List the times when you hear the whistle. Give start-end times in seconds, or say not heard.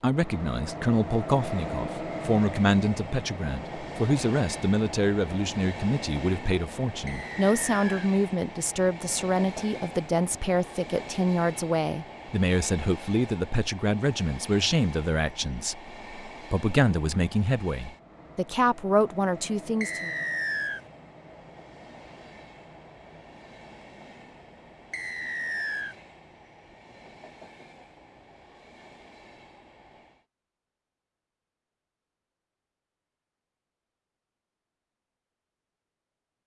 7.0-8.1, 19.8-20.8, 24.9-25.9.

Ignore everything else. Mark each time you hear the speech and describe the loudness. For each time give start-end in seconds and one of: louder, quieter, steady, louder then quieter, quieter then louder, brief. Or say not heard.
0.0-20.1 steady.